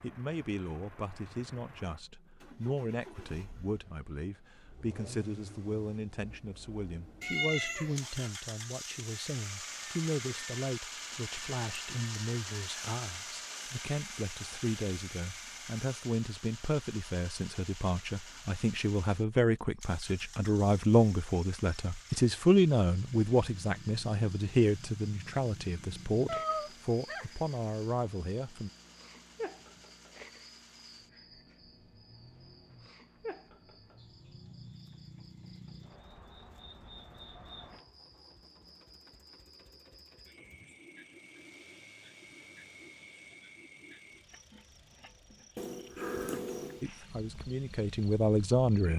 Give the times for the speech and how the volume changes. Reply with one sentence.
You can hear the speech from 0.0 to 28.7 s, getting louder; and briefly from 46.8 to 48.9 s.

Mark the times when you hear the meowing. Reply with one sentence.
The meowing can be heard from 7.2 to 8.1 s, from 26.2 to 27.2 s and from 45.5 to 46.9 s.